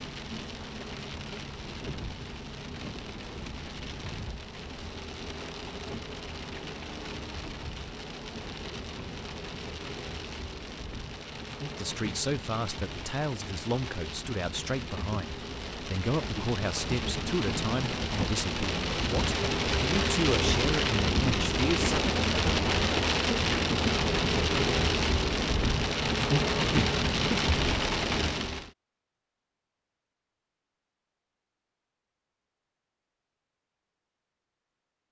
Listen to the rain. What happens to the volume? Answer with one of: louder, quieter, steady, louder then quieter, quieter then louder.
louder.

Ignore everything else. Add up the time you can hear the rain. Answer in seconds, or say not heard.
29 s.